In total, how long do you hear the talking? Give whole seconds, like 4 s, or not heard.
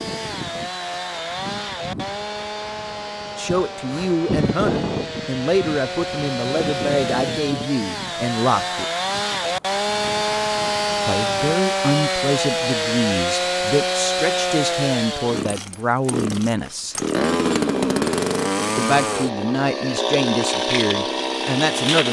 15 s.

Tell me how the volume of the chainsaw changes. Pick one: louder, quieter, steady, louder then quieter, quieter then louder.
louder.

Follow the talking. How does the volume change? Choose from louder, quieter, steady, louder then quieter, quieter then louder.
steady.